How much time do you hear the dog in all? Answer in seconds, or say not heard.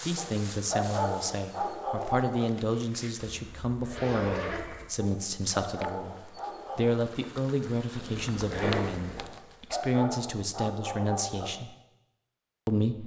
7 s.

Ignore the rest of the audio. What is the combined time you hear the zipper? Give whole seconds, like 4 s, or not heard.
3 s.